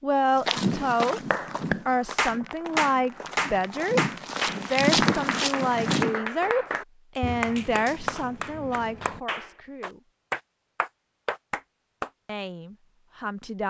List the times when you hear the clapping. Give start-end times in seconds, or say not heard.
1.3-12.1.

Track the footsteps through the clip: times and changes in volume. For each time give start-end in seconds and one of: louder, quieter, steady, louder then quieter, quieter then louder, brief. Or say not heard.
0.5-6.2 quieter then louder.